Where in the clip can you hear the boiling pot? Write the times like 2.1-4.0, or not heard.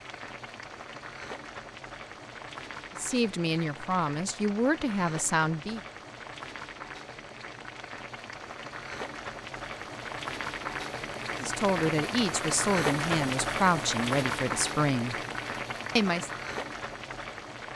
0.0-17.7.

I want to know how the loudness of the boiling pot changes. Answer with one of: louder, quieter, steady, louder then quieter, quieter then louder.
louder.